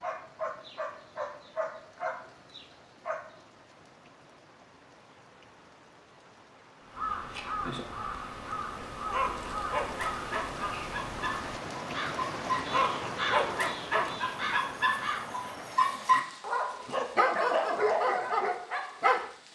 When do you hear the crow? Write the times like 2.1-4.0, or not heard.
6.8-15.4.